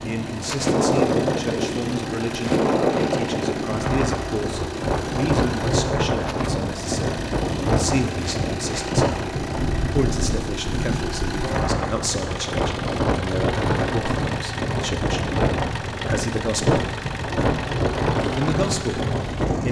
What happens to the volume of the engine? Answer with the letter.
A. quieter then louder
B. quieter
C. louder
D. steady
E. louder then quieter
D.